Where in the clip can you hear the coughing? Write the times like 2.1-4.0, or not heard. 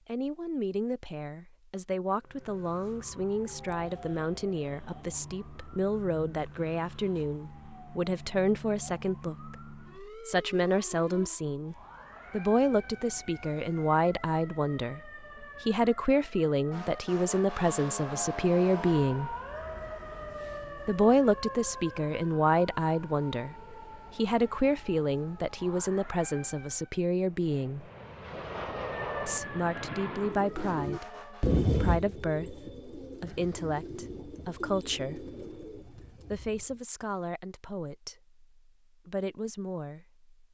not heard.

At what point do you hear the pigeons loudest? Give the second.
32 s.